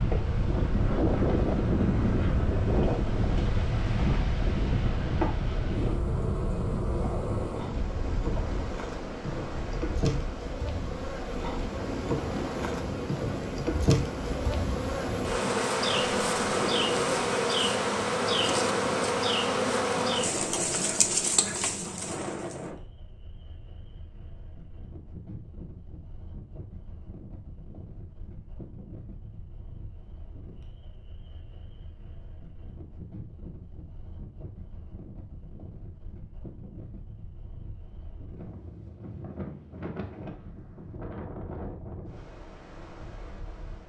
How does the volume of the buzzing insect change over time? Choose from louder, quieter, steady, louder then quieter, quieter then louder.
louder.